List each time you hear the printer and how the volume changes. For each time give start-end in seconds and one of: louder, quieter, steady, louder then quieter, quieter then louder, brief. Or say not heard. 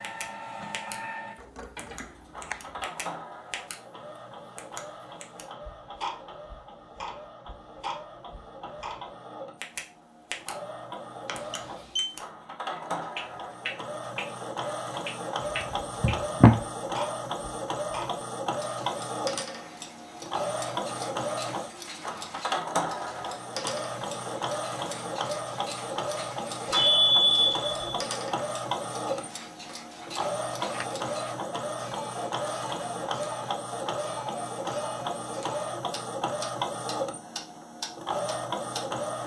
0.0-39.2 louder.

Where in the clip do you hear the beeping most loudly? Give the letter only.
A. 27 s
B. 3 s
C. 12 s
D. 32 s
A.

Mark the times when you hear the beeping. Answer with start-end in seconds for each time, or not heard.
11.2-12.1, 26.7-28.0.